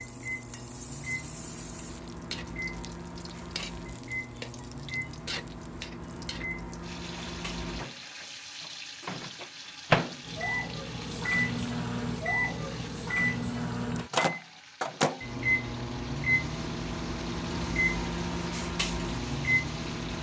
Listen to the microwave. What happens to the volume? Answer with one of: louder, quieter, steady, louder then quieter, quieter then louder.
louder.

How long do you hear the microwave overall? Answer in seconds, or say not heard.
20 s.